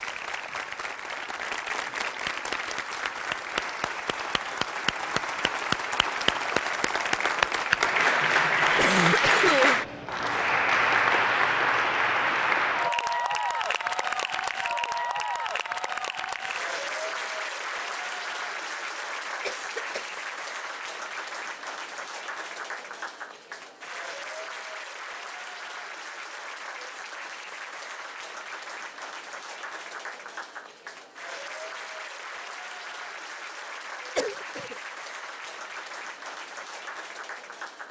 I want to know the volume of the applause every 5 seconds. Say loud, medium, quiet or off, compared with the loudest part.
medium, loud, loud, medium, quiet, quiet, quiet, quiet.